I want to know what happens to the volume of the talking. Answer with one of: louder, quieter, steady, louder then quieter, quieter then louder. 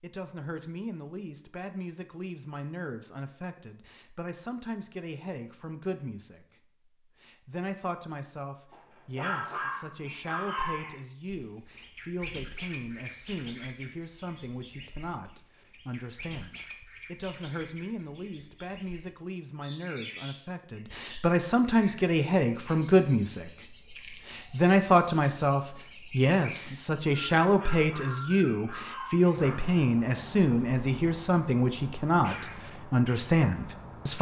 louder.